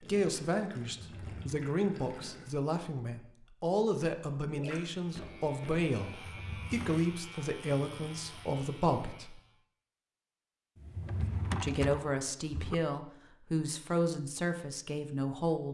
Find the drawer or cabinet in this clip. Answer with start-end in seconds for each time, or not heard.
0.9-1.6, 6.1-7.0, 10.8-12.8.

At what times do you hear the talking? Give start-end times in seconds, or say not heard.
0.0-9.4, 11.6-15.6.